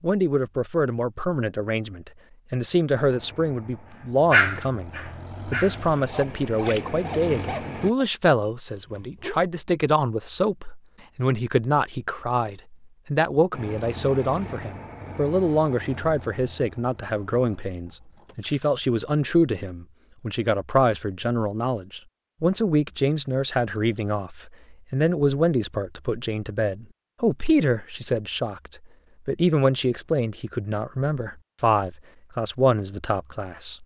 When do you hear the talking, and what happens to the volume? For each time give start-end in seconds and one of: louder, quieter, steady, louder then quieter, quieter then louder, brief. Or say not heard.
0.0-33.8 steady.